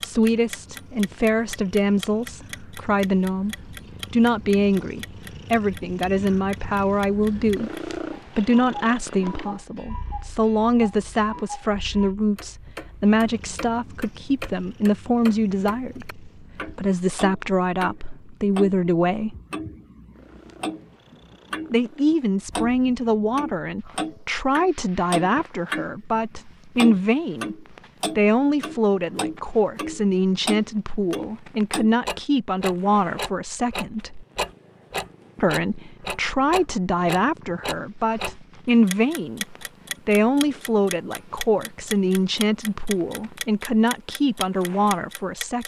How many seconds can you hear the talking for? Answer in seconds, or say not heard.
42 s.